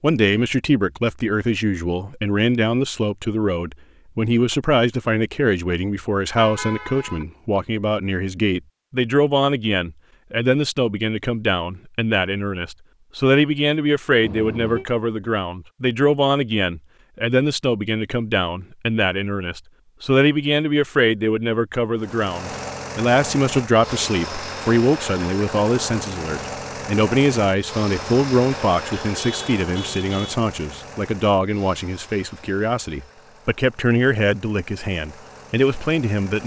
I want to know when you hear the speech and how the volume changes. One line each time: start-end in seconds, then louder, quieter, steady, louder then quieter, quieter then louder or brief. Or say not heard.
0.0-36.4 steady.